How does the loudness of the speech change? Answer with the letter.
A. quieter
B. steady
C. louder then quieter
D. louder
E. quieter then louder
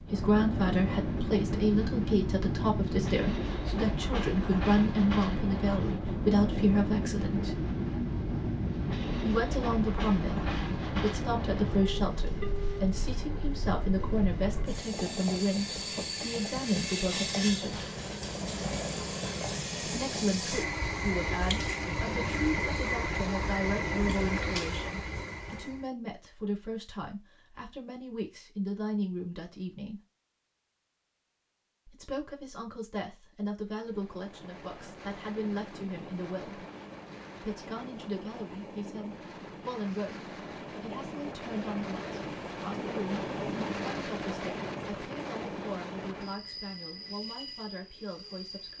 A.